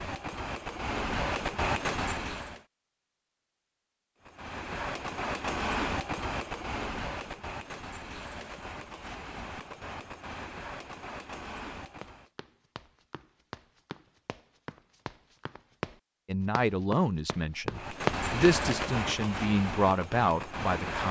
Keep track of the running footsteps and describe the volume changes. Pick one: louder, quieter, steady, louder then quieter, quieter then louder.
louder.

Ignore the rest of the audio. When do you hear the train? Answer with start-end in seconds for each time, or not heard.
0.0-2.6, 4.2-12.3, 17.7-21.0.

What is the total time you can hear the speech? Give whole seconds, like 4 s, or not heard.
5 s.